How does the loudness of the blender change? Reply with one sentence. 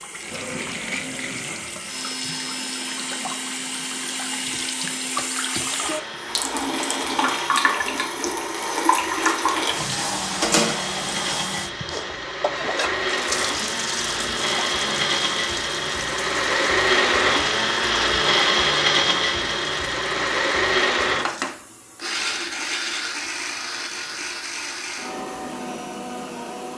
The loudness of the blender goes up, then down.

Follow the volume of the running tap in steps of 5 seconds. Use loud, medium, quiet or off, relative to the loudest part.
medium, loud, loud, medium, quiet, quiet.